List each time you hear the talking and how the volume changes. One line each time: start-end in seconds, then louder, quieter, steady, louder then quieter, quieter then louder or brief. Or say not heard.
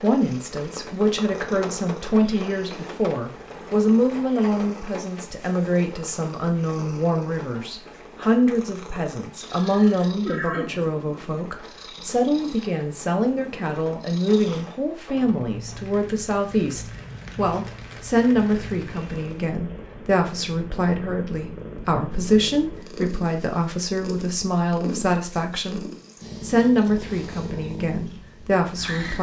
0.0-29.1 steady.